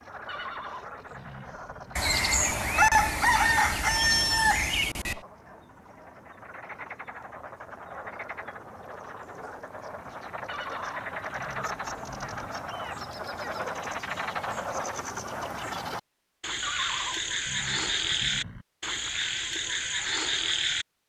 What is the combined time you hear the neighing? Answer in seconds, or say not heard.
6 s.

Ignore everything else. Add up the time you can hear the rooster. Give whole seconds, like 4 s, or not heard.
3 s.